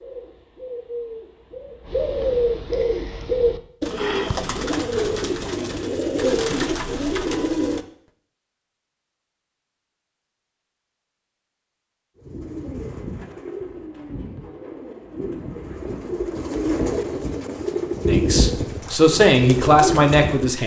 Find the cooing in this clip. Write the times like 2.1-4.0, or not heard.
0.0-7.8, 12.2-20.6.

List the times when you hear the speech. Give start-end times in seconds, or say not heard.
18.1-20.6.